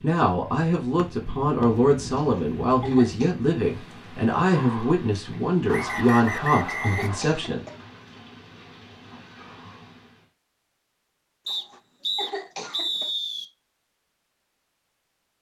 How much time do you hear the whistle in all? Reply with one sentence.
You can hear the whistle for 4 seconds altogether.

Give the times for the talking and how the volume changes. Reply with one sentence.
You can hear the talking from 0.0 to 7.7 s, at a steady volume.